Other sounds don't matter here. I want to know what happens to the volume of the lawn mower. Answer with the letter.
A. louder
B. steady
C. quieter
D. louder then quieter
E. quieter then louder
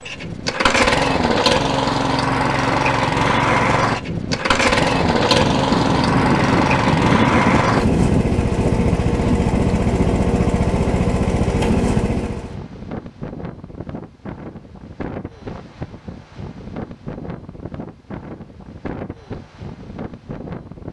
B.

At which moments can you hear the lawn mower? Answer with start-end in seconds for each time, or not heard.
0.0-12.6.